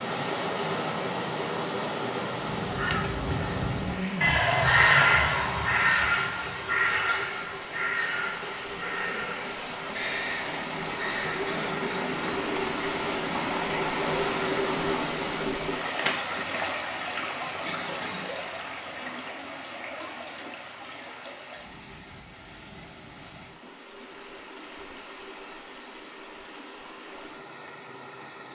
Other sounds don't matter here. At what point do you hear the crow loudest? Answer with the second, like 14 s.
5 s.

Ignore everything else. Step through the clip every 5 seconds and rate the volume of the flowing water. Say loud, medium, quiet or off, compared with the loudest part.
loud, medium, loud, loud, quiet, quiet.